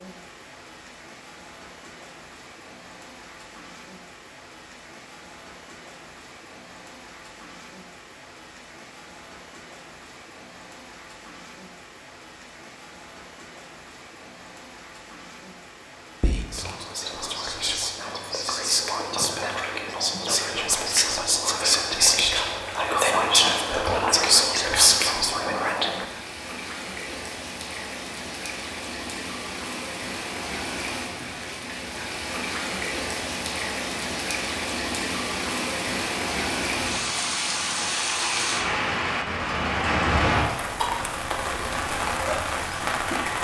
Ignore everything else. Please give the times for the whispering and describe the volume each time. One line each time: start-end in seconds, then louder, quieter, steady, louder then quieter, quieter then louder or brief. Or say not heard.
16.2-26.1 louder.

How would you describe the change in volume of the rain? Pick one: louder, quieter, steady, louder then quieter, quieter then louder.
louder.